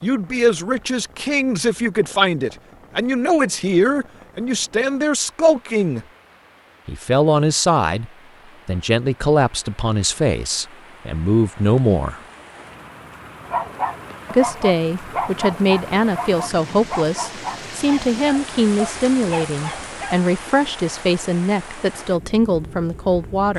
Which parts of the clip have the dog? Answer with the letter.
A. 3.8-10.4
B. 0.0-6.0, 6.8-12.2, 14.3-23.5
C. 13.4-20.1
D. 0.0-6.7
C.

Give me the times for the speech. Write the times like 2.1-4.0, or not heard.
0.0-6.0, 6.8-12.2, 14.3-23.5.